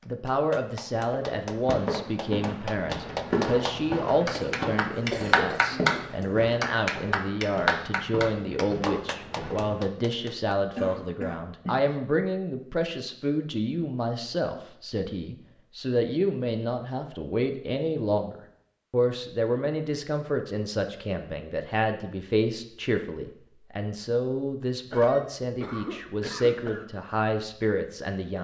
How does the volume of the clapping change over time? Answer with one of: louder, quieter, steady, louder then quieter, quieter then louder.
louder then quieter.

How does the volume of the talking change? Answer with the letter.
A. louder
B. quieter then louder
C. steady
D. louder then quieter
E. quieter
C.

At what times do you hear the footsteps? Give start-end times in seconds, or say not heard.
0.9-10.3.